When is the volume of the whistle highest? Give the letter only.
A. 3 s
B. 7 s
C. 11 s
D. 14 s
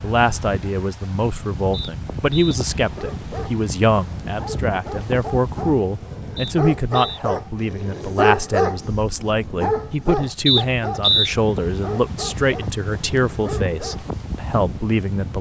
C.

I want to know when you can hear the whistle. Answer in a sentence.
The whistle can be heard from 1.7 to 2.5 s, from 6.3 to 7.2 s and from 10.4 to 11.3 s.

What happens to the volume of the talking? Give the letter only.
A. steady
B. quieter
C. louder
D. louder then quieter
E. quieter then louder
A.